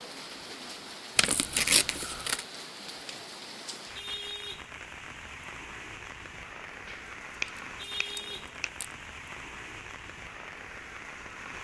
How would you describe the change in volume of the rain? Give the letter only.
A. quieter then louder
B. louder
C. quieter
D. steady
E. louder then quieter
D.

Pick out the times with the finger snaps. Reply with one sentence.
The finger snaps can be heard from 6.8 to 8.7 s.